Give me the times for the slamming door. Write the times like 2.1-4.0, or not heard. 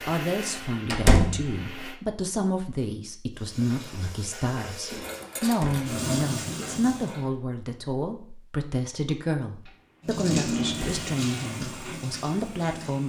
0.8-1.4, 5.4-5.8, 10.6-11.1.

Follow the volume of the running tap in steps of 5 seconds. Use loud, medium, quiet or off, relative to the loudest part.
medium, loud, loud.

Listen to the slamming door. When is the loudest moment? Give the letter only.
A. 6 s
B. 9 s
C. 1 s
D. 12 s
C.